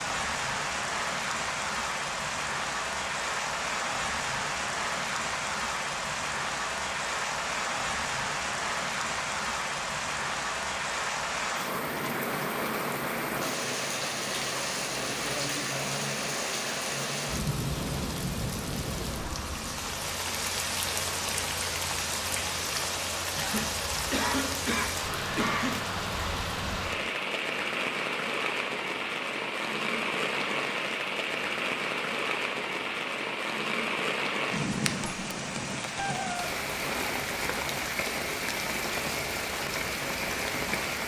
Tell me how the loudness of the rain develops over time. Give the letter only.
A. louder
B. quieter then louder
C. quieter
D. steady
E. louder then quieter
D.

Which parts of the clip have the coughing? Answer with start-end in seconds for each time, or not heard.
23.4-25.8.